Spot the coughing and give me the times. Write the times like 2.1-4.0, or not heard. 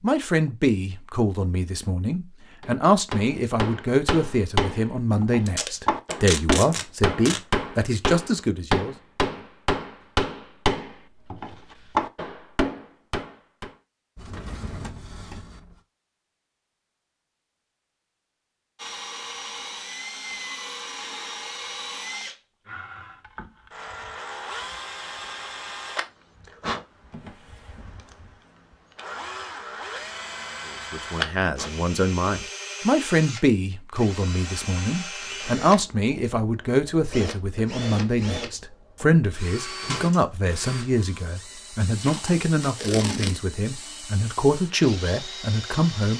not heard.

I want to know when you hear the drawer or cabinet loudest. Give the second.
15 s.